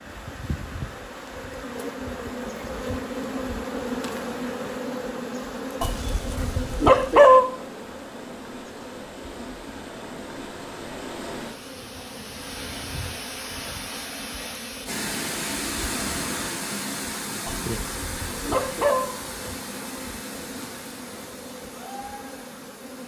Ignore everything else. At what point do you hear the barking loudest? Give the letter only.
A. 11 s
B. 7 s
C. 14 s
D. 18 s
B.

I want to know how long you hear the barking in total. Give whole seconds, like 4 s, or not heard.
3 s.